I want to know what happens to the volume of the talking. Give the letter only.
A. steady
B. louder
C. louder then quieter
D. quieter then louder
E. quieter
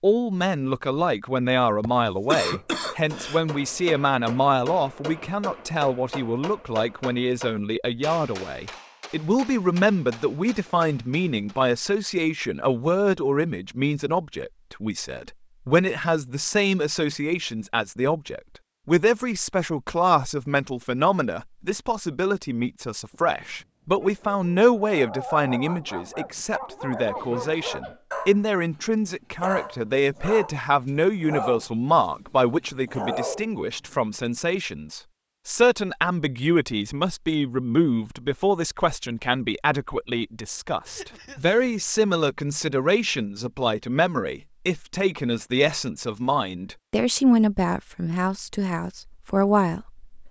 A.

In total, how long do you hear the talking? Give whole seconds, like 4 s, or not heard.
50 s.